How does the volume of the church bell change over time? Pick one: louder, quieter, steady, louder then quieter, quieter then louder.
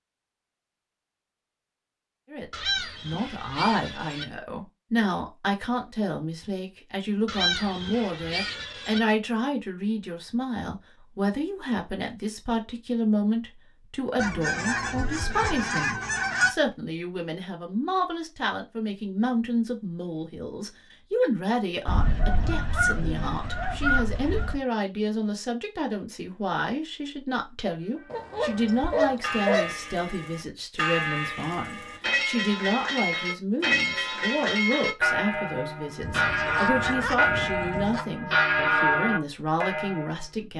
louder.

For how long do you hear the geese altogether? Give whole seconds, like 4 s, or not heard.
12 s.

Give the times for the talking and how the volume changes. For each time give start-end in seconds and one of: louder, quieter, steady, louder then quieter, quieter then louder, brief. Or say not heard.
2.3-40.5 steady.